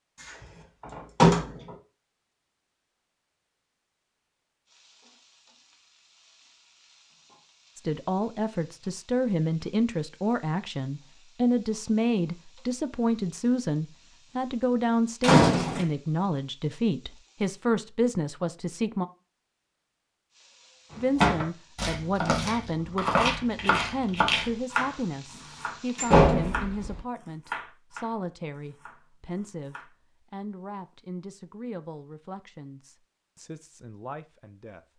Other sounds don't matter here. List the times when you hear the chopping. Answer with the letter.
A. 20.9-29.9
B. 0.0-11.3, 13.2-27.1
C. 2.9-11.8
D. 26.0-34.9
A.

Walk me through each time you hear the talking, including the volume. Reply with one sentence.
You can hear the talking from 7.8 to 19.1 s, at a steady volume; and from 20.9 to 34.9 s, getting quieter.